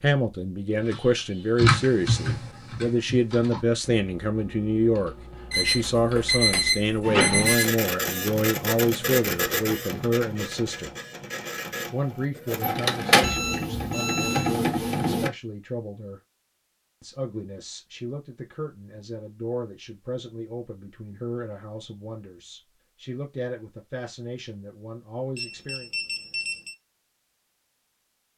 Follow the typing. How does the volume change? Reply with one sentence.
The volume of the typing goes down.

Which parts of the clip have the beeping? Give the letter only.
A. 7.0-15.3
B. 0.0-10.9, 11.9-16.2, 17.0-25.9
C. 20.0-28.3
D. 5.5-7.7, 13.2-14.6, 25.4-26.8
D.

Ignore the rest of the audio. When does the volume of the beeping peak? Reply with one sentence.
The loudest moment of the beeping is at 7 seconds.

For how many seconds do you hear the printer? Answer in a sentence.
The printer can be heard for 8 seconds in total.